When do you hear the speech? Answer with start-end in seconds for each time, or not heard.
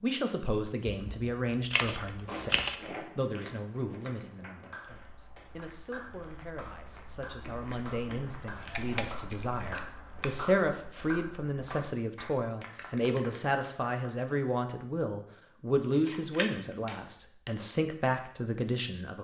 0.0-19.1.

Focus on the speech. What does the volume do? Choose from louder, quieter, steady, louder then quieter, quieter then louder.
quieter then louder.